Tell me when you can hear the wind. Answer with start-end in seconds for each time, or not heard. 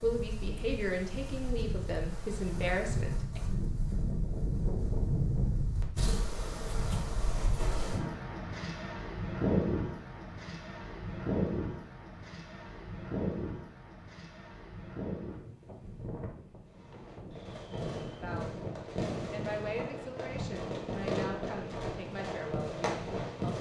0.0-23.4.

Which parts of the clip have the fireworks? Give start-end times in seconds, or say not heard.
16.6-23.5.